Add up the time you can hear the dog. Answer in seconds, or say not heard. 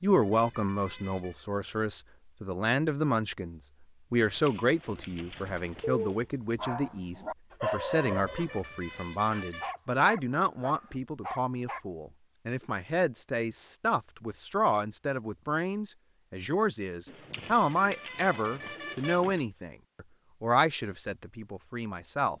7 s.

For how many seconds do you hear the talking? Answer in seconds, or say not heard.
22 s.